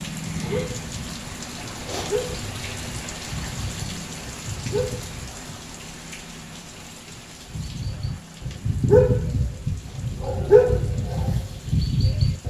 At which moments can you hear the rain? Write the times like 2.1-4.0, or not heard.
0.0-12.4.